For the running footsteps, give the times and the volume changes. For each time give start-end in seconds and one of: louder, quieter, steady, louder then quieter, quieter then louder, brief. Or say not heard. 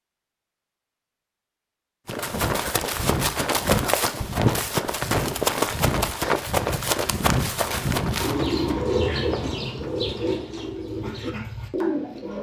2.0-10.8 quieter.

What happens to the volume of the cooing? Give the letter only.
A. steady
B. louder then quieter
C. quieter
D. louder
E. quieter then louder
E.